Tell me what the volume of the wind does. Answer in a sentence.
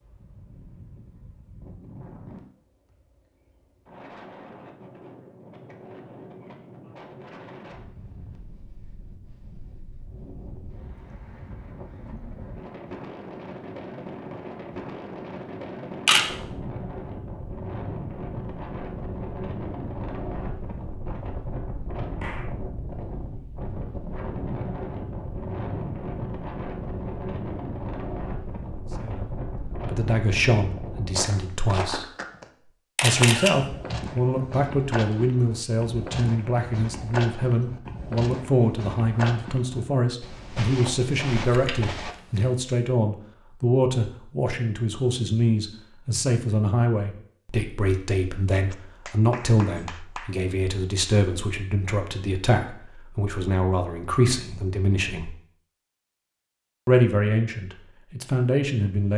The volume of the wind goes up.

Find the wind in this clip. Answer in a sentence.
You can hear the wind from 0.0 to 31.6 s.